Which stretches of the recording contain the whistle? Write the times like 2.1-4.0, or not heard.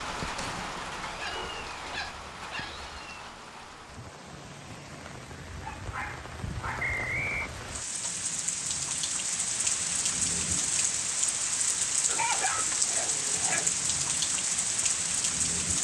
6.8-7.5.